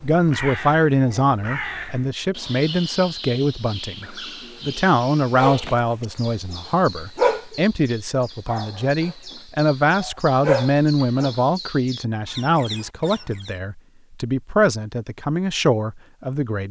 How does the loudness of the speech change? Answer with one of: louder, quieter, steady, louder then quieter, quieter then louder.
steady.